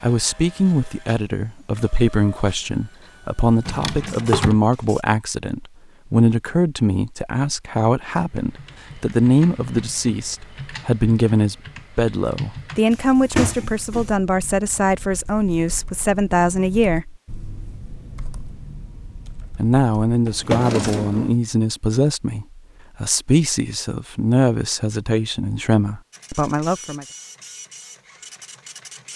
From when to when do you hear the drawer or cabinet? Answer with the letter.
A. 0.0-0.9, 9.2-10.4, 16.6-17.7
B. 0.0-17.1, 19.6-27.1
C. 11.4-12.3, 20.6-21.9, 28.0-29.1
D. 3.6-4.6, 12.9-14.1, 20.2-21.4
D.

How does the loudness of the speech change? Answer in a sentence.
The loudness of the speech stays about the same.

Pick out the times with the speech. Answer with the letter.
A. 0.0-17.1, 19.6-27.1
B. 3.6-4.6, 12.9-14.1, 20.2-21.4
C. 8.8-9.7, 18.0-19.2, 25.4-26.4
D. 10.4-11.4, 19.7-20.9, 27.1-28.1
A.